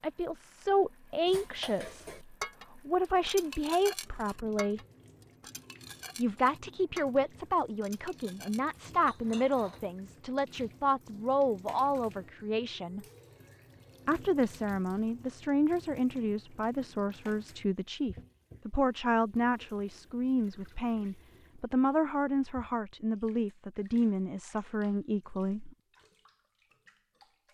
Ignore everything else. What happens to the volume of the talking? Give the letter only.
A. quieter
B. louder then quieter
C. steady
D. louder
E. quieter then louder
C.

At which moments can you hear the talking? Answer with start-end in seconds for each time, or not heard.
0.0-4.8, 6.2-13.1, 14.1-25.8.